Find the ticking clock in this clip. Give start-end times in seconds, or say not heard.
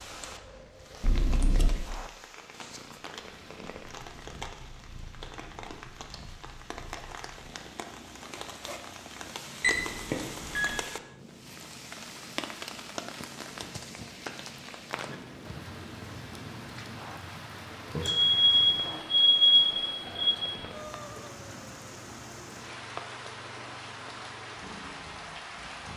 not heard.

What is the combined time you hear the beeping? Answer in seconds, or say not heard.
4 s.